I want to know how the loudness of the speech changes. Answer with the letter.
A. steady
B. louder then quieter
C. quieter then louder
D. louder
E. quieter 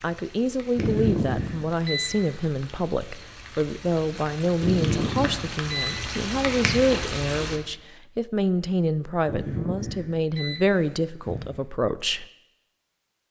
A.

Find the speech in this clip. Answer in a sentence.
You can hear the speech from 0.0 to 12.2 s.